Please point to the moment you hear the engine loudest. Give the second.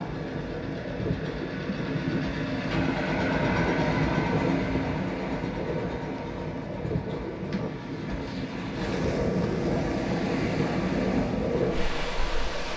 4 s.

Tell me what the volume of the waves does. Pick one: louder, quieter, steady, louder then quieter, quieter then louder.
louder.